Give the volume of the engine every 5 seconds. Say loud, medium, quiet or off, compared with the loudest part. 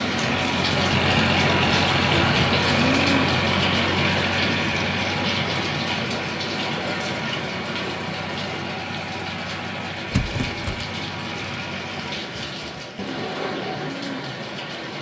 loud, medium, medium.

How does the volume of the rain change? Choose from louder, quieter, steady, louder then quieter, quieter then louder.
quieter.